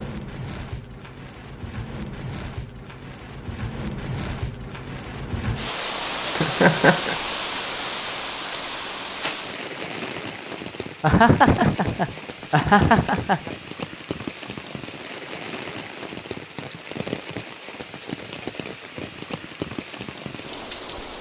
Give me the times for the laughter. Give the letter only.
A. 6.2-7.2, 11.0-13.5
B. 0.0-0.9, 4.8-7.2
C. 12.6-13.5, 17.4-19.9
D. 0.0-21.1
A.